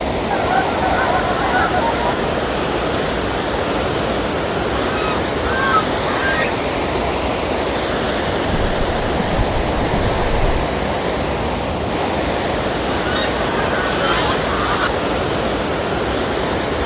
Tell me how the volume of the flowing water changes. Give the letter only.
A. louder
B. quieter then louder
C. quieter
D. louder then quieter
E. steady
E.